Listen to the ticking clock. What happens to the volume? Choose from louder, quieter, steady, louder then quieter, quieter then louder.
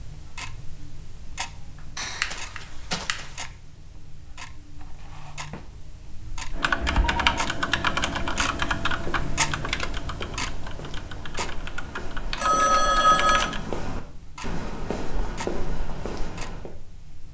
louder then quieter.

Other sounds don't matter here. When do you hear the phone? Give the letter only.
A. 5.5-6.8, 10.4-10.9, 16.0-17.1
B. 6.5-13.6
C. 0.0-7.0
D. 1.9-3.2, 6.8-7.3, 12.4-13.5
D.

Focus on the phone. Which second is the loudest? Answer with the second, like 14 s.
13 s.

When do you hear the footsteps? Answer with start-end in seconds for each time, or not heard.
8.9-16.8.